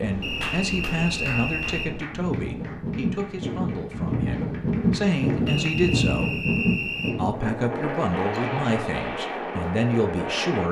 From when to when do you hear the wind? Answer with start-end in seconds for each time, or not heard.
0.0-10.6.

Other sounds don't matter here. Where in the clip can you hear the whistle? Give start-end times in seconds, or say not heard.
0.2-1.9, 5.5-7.2.